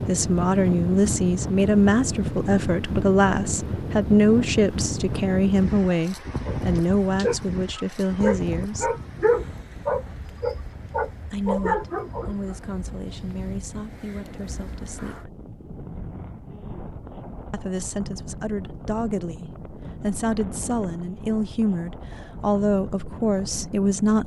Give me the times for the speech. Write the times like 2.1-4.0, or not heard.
0.1-8.9, 11.2-15.3, 17.5-24.2.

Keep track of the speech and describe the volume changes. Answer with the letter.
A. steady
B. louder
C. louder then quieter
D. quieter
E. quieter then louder
E.